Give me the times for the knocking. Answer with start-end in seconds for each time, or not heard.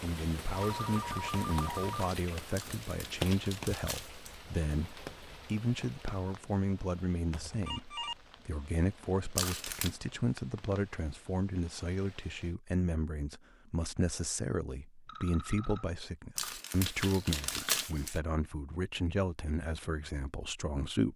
not heard.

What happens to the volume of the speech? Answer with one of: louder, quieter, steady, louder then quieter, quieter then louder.
steady.